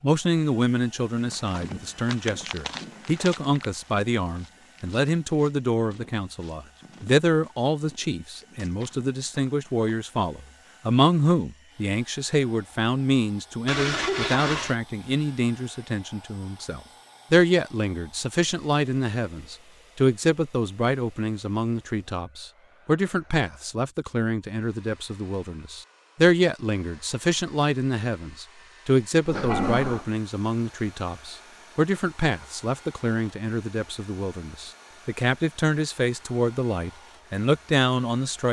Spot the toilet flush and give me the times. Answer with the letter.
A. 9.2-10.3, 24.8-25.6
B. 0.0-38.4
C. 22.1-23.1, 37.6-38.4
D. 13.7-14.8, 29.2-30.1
D.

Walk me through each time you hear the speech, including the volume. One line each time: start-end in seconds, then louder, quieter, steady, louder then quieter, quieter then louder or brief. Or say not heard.
0.0-38.4 steady.